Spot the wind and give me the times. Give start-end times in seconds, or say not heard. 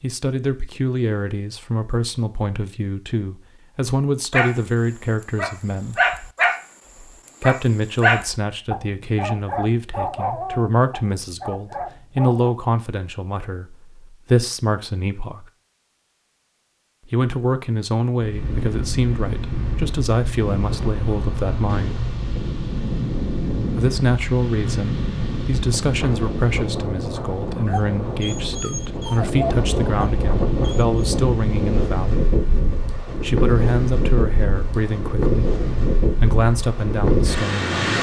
18.2-37.9.